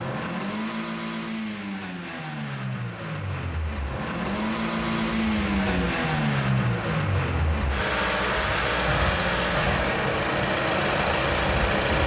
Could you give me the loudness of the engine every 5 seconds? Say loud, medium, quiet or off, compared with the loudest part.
medium, loud, loud.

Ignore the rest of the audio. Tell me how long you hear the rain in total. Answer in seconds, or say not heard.
8 s.